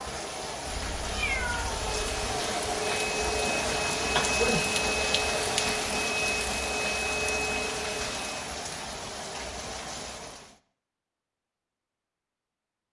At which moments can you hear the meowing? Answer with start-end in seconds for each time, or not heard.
0.7-2.1.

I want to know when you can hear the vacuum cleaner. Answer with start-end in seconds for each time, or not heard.
1.9-8.5.